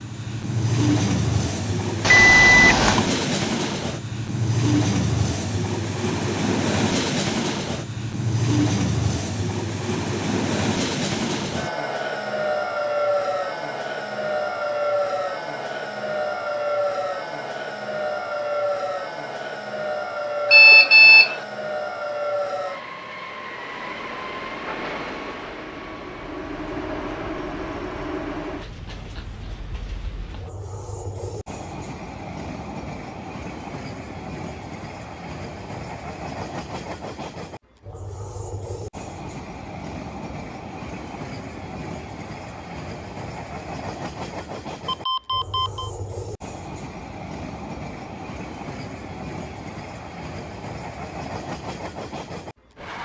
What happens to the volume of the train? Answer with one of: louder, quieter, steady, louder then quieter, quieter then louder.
quieter.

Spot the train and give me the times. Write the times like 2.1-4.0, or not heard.
0.0-53.0.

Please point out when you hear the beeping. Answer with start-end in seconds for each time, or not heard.
2.0-3.0, 20.5-21.4, 44.9-45.9.